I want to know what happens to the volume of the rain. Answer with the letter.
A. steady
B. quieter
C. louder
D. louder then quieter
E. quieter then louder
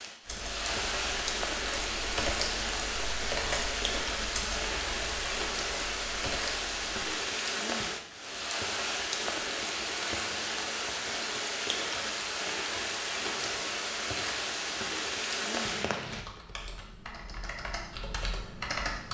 A.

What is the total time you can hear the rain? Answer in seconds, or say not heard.
16 s.